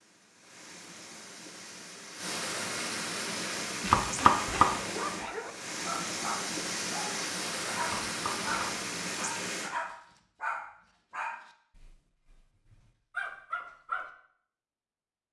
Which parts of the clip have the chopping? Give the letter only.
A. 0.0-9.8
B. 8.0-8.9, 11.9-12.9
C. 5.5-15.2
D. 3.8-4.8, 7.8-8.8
D.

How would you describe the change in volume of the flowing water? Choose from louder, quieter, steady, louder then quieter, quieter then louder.
louder.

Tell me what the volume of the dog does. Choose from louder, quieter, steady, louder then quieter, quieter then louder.
steady.